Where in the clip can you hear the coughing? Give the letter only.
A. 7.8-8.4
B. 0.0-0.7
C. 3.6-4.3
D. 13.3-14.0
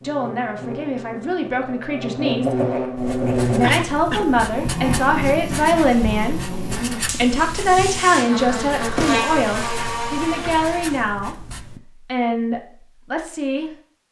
C.